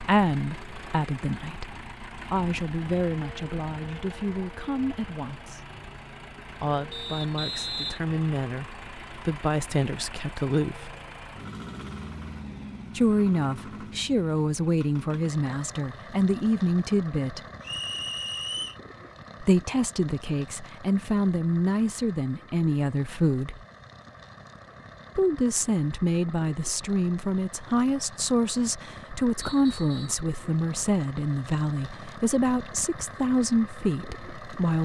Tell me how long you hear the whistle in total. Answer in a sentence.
You can hear the whistle for 3 seconds altogether.